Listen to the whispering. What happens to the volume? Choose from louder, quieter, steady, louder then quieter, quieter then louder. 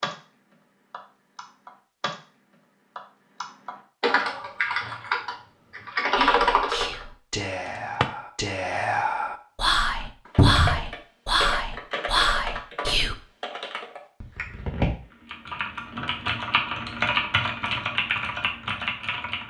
louder.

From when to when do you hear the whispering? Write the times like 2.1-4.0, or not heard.
6.2-13.2.